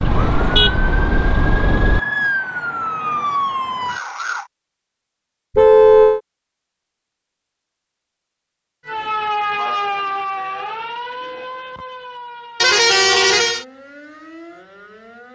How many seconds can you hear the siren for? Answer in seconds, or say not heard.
11 s.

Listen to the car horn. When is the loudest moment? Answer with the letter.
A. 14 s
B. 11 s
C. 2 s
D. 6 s
D.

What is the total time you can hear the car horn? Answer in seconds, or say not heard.
4 s.